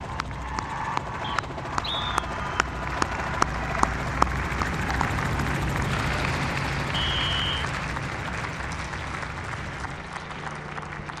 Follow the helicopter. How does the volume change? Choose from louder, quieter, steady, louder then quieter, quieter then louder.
louder then quieter.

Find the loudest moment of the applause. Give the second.
4 s.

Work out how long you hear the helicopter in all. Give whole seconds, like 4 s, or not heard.
11 s.